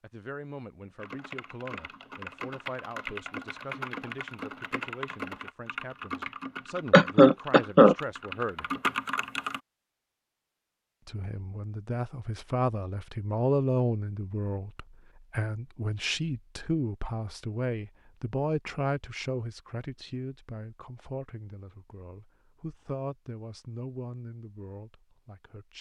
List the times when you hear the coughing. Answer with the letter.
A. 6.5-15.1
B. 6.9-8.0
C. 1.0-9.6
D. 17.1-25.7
B.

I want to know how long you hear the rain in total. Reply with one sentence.
You can't hear the rain here.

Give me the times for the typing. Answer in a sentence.
You can hear the typing from 1.0 to 9.6 s.